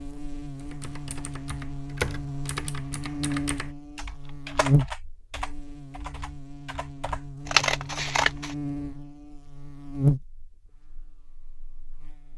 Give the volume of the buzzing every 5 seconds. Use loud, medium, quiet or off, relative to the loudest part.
loud, medium, loud.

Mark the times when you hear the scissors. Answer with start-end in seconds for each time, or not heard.
7.5-8.6.